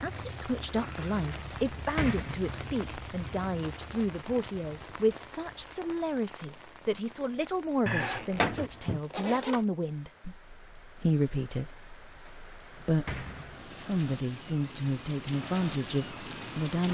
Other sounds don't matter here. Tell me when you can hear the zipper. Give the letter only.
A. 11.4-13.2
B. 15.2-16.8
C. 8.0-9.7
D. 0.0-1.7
C.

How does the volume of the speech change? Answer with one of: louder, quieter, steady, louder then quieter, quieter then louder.
steady.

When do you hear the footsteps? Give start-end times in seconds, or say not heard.
not heard.